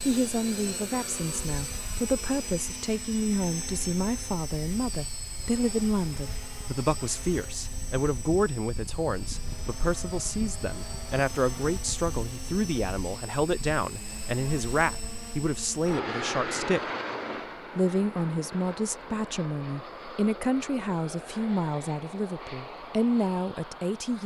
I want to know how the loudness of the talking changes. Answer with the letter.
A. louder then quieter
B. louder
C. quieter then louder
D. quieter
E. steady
E.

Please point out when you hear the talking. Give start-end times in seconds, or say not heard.
0.1-16.8, 17.8-24.2.